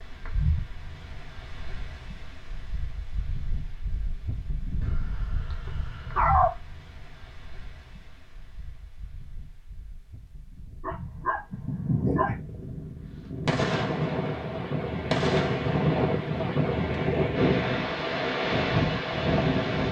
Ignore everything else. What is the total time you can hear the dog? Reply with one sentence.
The dog can be heard for 3 seconds in total.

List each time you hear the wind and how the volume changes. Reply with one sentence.
The wind can be heard from 0.0 to 19.8 s, getting quieter then louder.